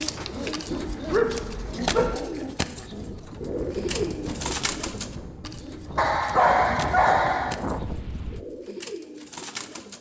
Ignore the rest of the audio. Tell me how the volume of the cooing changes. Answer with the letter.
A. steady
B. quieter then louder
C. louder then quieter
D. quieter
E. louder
D.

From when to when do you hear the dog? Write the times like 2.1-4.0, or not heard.
0.7-2.1, 6.0-7.5.